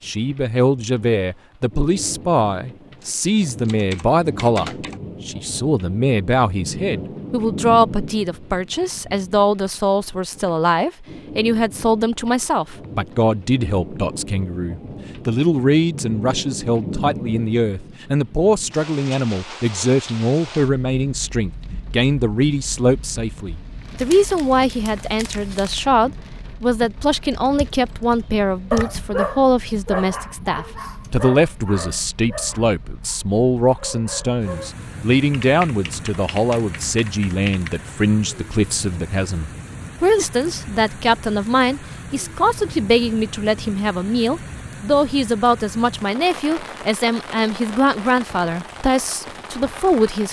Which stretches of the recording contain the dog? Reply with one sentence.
You can hear the dog from 28.7 to 34.7 s.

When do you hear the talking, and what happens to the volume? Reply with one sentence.
The talking can be heard from 0.0 to 50.2 s, at a steady volume.